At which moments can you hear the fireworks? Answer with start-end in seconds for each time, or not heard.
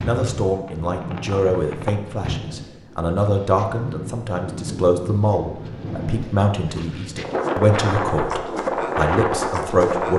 0.0-2.4.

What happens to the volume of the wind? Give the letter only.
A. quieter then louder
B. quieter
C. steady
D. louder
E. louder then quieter
D.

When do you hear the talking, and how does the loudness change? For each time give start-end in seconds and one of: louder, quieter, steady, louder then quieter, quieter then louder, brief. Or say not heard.
0.0-10.1 steady.